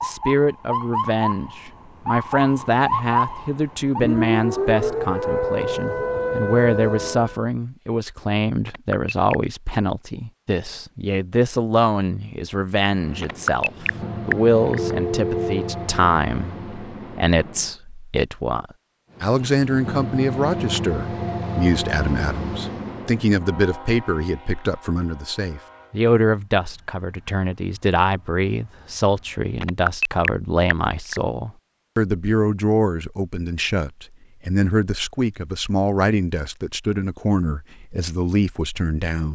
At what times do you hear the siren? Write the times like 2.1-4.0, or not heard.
0.0-7.4.